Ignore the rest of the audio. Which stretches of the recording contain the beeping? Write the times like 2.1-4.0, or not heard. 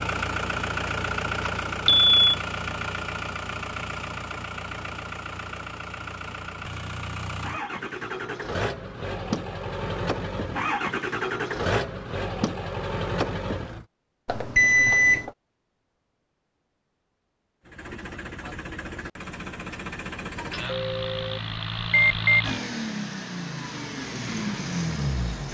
1.4-2.1, 14.2-15.3, 20.6-22.4.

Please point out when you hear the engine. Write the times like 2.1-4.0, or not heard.
0.0-13.8, 17.6-25.4.